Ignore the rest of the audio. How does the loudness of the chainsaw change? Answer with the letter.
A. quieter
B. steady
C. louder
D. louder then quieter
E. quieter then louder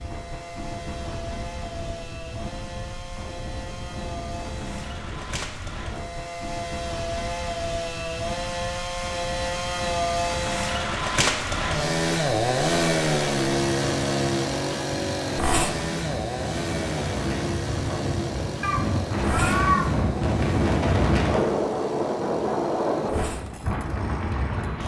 D.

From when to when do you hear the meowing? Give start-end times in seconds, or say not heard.
18.6-19.9.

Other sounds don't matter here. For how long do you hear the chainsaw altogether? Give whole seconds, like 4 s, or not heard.
25 s.